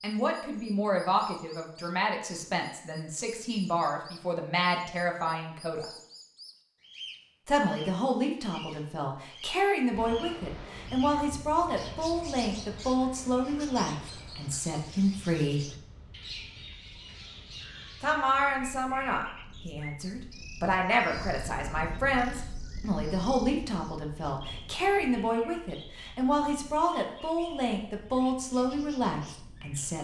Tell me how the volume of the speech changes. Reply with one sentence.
The loudness of the speech stays about the same.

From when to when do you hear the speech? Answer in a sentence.
The speech can be heard from 0.0 to 5.8 s, from 7.5 to 15.7 s and from 18.0 to 30.0 s.